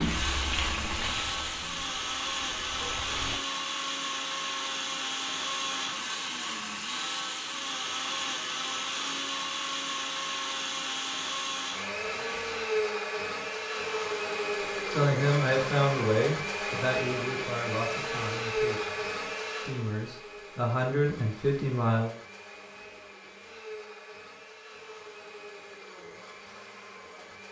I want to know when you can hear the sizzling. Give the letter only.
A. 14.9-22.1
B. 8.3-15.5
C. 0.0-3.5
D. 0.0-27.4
C.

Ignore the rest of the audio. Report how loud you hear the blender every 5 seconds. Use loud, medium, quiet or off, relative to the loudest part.
loud, loud, loud, loud, quiet, quiet.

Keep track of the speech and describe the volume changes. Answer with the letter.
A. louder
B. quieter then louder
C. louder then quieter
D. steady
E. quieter
B.